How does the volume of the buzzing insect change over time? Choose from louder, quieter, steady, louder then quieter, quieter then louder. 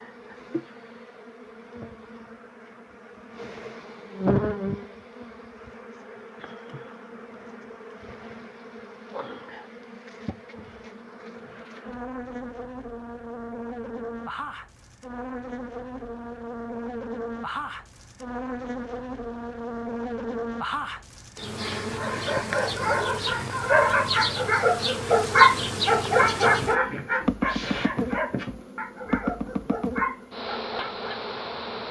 quieter then louder.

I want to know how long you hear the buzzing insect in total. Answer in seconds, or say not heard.
32 s.